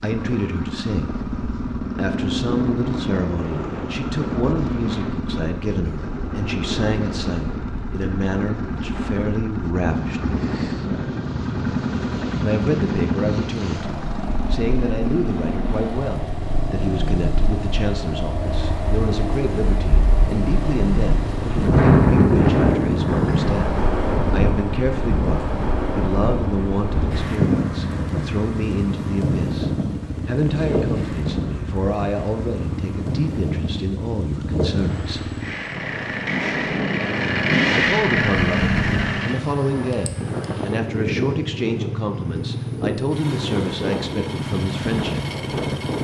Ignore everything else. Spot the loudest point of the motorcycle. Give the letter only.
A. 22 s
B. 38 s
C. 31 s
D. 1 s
B.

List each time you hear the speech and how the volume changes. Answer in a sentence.
You can hear the speech briefly from 0.0 to 1.1 s; from 1.9 to 10.4 s, at a steady volume; from 12.4 to 35.4 s, at a steady volume; and from 37.7 to 45.2 s, at a steady volume.